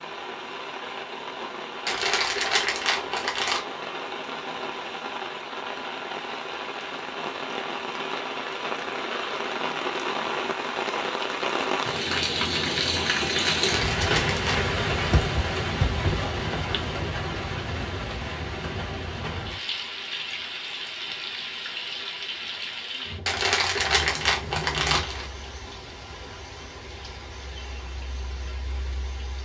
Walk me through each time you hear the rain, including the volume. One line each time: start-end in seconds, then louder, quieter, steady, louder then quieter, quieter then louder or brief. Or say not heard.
0.0-29.3 louder then quieter.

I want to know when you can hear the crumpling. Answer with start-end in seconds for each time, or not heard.
1.9-3.6, 13.4-14.6, 23.2-25.2.